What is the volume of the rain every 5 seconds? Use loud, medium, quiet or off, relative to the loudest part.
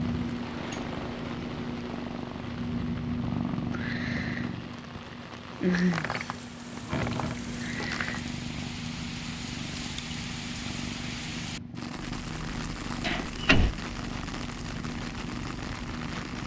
medium, loud, loud, loud.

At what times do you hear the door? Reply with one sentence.
You can hear the door from 0.4 to 1.4 s, from 5.7 to 8.2 s and from 13.0 to 13.8 s.